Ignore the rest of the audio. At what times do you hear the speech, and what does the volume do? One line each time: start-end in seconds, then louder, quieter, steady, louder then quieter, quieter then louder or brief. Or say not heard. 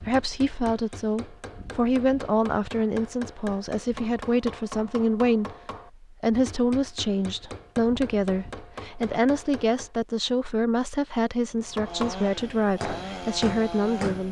0.0-14.2 steady.